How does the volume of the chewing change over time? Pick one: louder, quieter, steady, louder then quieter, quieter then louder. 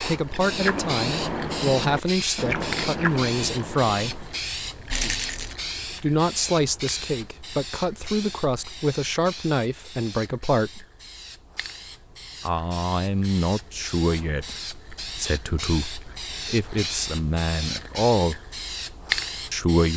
quieter.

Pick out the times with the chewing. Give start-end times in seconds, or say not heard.
0.2-5.9.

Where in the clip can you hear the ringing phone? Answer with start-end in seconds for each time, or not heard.
not heard.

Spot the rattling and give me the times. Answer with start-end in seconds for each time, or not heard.
4.9-5.5.